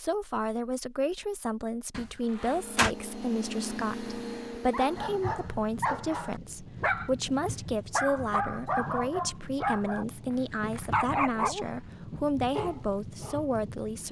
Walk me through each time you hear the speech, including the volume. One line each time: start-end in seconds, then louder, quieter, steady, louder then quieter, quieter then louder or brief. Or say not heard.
0.0-14.0 steady.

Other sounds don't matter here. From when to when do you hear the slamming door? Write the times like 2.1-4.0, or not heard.
1.9-3.0.